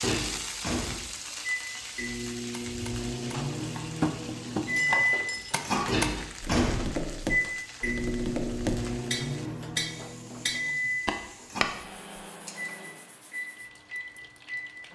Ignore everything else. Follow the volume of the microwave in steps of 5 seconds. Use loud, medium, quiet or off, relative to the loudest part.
loud, loud, medium.